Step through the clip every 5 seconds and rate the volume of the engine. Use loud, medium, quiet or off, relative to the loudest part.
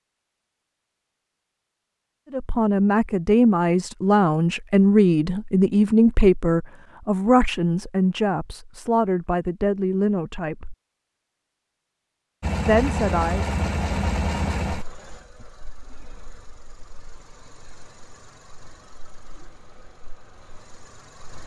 off, off, loud, quiet, quiet.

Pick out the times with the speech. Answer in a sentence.
The speech can be heard from 2.3 to 10.8 s and from 12.7 to 13.4 s.